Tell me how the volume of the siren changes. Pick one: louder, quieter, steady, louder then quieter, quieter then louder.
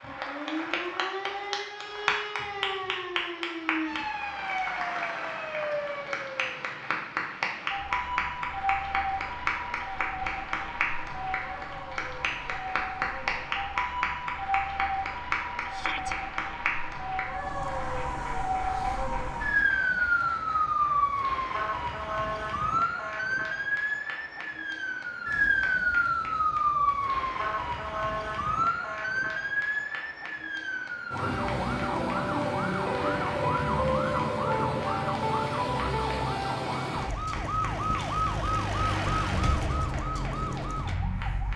louder.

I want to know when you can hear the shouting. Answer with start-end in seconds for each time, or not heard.
15.7-16.1.